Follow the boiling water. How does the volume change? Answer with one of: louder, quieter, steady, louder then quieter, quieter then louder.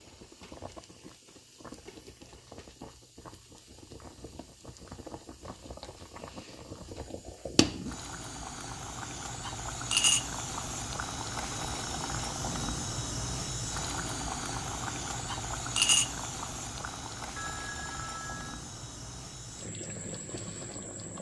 louder then quieter.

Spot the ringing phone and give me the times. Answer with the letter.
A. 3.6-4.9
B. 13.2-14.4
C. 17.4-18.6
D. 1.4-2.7
C.